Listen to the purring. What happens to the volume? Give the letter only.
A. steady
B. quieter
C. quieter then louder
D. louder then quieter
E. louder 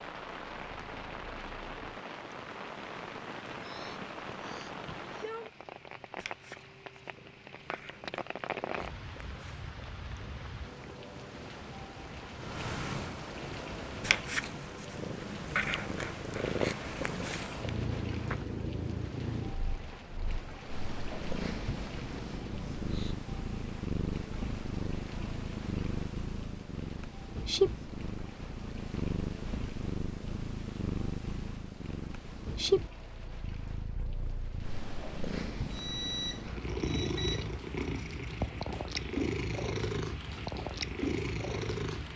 E.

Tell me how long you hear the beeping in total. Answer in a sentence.
The beeping can be heard for 2 seconds in total.